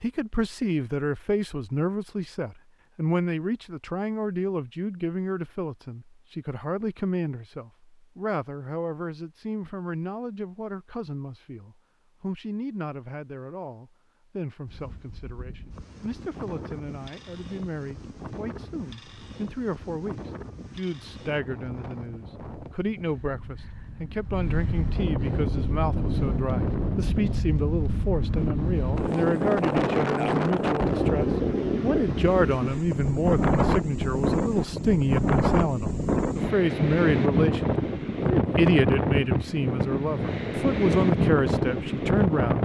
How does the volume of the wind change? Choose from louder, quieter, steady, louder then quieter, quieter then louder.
louder.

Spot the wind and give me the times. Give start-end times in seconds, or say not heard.
14.7-42.5.